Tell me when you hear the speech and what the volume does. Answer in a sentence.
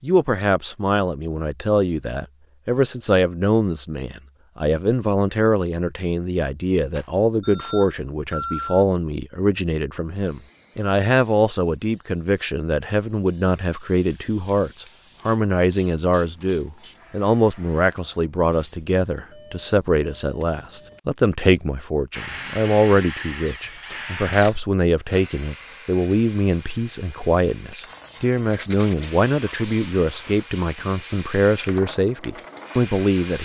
You can hear the speech from 0.0 to 33.4 s, at a steady volume.